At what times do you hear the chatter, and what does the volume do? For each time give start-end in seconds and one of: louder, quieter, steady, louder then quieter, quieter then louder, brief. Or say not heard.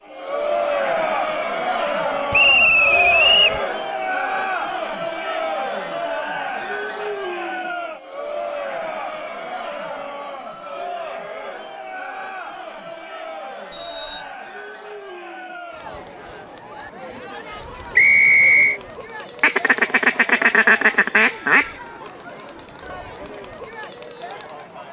0.1-24.8 quieter.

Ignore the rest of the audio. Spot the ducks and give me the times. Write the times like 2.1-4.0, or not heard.
19.4-21.8.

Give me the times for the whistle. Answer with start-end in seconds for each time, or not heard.
2.3-3.6, 13.7-14.3, 17.9-18.8.